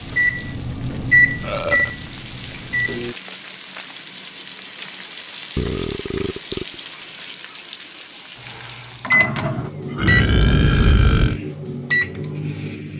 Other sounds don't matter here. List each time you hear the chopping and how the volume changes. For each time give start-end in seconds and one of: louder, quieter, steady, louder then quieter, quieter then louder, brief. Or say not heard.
not heard.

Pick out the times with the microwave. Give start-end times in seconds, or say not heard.
0.0-3.1, 8.4-12.9.